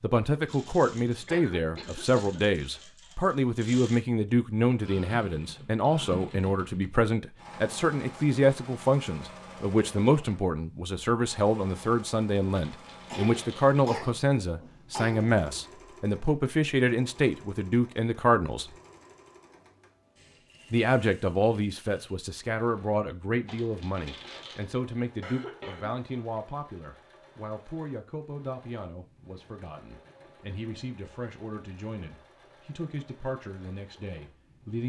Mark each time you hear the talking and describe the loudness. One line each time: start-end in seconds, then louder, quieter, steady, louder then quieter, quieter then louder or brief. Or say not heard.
0.0-18.7 steady
20.7-34.8 quieter.